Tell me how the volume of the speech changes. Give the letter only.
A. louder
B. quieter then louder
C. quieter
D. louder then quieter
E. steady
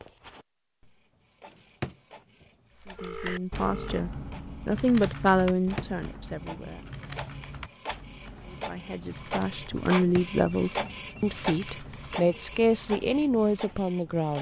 E.